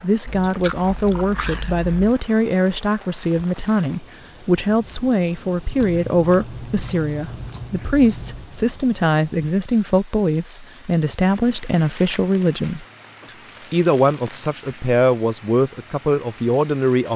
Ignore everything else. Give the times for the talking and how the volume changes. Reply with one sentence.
You can hear the talking from 0.0 to 17.1 s, at a steady volume.